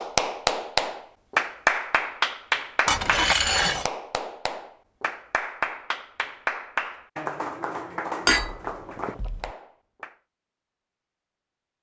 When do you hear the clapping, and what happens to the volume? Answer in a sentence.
The clapping can be heard from 0.0 to 10.2 s, getting quieter.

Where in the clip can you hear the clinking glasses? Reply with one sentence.
You can hear the clinking glasses from 2.9 to 3.9 s and from 8.2 to 9.5 s.